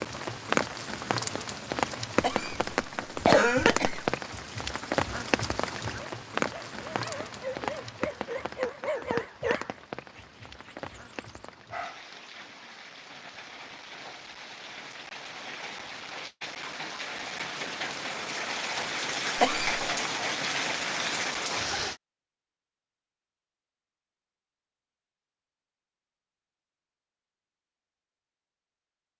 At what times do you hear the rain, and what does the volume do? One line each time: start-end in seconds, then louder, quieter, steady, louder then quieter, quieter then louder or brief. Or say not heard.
0.0-21.9 quieter then louder.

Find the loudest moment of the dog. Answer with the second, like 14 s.
9 s.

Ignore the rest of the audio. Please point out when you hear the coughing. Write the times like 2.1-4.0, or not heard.
2.2-4.1, 19.4-19.8.